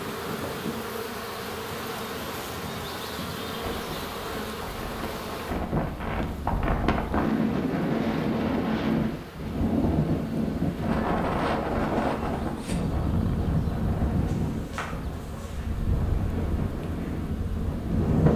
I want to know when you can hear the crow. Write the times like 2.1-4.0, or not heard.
not heard.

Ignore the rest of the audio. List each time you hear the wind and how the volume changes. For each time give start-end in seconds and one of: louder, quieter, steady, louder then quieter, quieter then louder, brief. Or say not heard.
0.0-18.3 louder then quieter.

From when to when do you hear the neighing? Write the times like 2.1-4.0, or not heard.
not heard.